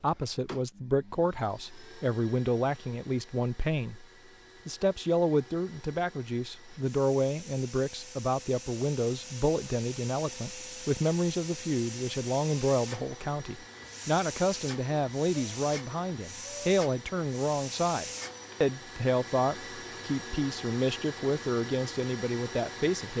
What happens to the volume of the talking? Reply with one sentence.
The loudness of the talking stays about the same.